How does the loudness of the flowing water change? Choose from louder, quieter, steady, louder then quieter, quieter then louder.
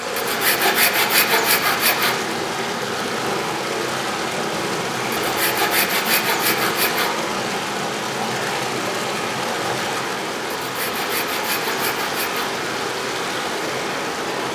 steady.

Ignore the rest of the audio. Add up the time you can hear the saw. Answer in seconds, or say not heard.
6 s.